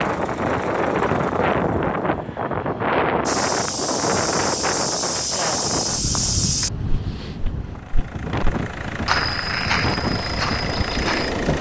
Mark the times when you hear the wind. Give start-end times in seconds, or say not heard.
0.0-11.5.